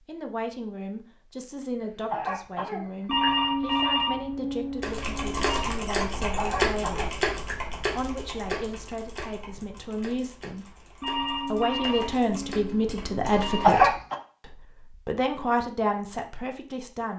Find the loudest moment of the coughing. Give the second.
14 s.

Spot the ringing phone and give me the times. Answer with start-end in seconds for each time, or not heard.
3.0-5.7, 11.0-13.7.